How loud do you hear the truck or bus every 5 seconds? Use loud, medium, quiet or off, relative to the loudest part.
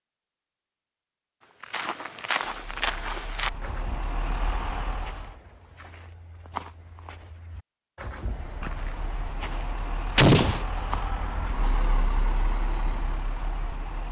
loud, medium, loud.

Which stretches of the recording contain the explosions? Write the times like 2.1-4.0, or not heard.
10.2-10.7.